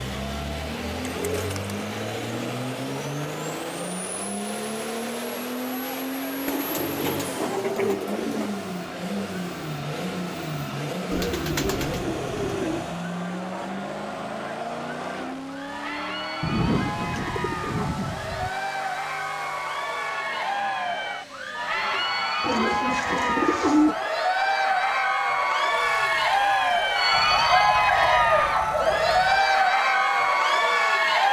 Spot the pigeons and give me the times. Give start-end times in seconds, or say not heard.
1.1-2.5, 6.5-8.5, 11.1-13.0, 16.4-18.5, 22.4-23.9, 27.1-29.4.